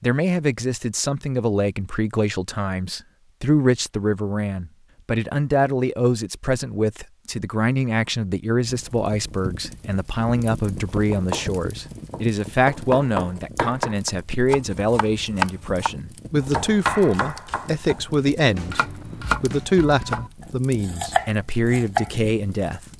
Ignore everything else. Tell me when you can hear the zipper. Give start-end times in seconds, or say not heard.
not heard.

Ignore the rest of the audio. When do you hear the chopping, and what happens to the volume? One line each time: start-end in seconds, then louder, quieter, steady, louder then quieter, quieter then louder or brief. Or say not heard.
10.8-22.1 steady.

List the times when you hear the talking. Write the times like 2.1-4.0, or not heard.
0.0-18.8, 19.4-22.8.